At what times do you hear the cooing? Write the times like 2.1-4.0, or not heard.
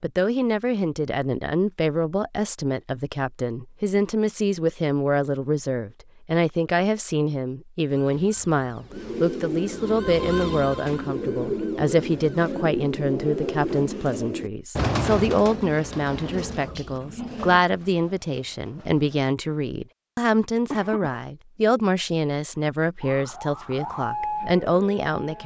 8.9-19.4.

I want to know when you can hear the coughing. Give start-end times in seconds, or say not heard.
20.7-21.2.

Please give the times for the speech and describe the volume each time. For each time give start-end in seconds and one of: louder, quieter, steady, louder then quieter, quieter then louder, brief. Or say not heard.
0.0-25.4 steady.